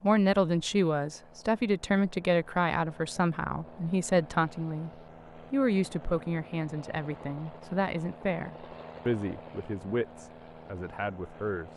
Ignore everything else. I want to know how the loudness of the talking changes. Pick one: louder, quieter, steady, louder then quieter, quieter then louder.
quieter.